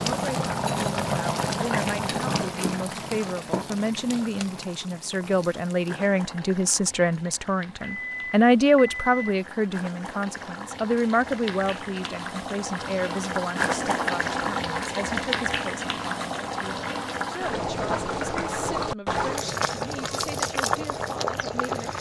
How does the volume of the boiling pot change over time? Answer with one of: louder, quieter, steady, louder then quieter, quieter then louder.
quieter then louder.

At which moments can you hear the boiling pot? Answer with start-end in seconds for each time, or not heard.
0.0-21.9.